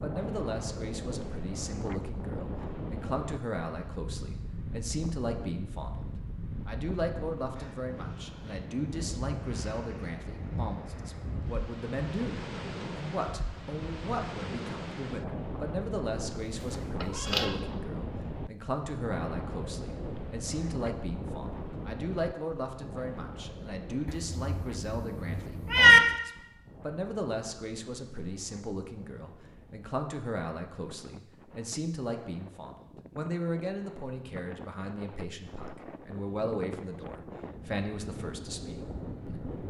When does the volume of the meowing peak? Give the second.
26 s.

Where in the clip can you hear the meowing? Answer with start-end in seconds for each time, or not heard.
17.0-17.6, 24.1-26.0.